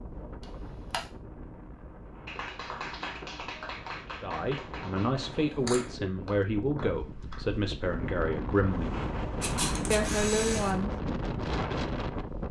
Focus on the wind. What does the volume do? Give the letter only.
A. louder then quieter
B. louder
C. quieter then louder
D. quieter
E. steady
B.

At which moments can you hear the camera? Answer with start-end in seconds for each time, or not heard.
0.4-1.1, 5.2-5.9, 9.4-10.8.